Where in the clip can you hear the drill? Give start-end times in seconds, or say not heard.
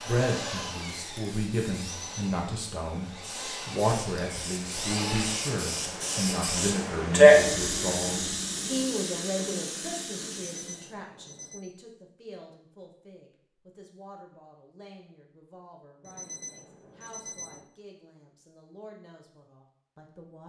0.0-5.5.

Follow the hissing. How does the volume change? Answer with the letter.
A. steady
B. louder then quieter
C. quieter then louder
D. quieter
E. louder
B.